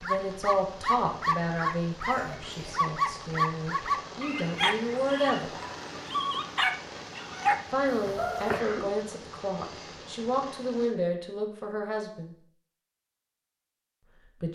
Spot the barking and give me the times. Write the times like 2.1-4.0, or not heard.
0.0-8.6.